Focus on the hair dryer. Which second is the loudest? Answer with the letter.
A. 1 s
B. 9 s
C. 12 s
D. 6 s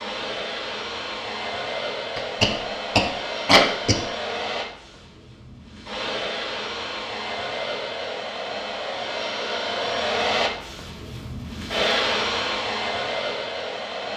C.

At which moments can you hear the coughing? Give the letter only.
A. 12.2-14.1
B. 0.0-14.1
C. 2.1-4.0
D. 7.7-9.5
C.